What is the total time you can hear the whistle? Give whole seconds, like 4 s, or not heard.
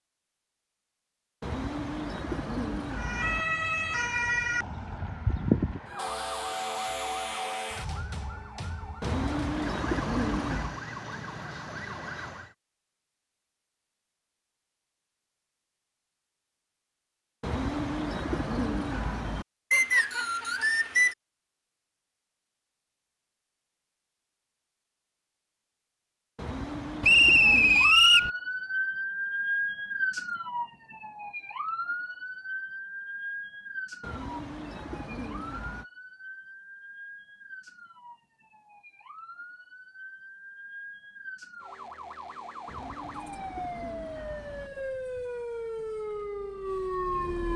3 s.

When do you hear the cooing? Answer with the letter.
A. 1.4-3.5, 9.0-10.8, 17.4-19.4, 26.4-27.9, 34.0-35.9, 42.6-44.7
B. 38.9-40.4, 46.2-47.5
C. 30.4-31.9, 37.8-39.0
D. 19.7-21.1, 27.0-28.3
A.